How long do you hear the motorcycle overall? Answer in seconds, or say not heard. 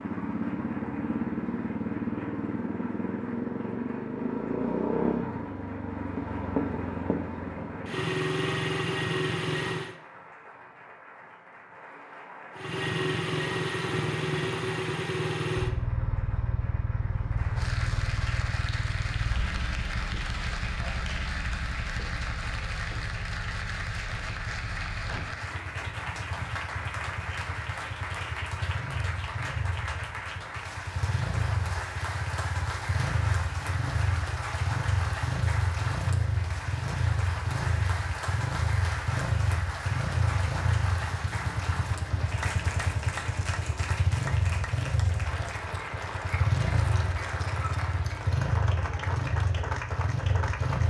48 s.